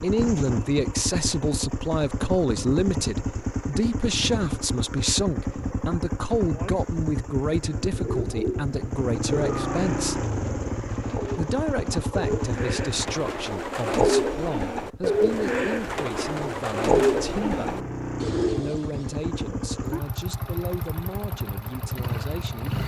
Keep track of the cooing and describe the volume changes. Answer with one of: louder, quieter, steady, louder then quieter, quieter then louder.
louder.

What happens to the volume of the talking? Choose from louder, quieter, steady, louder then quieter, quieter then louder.
quieter.